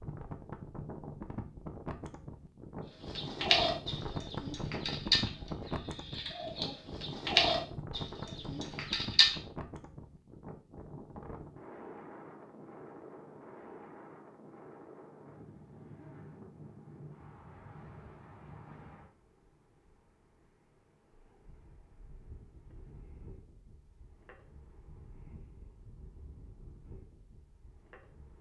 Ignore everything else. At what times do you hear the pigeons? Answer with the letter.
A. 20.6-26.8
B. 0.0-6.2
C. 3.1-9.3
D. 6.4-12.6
C.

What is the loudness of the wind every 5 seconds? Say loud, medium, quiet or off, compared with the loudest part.
loud, loud, medium, medium, quiet, quiet.